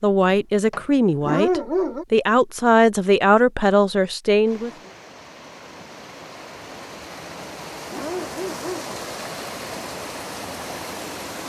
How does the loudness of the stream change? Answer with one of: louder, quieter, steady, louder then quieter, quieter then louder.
louder.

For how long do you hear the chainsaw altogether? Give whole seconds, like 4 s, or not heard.
not heard.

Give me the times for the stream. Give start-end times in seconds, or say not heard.
4.4-11.4.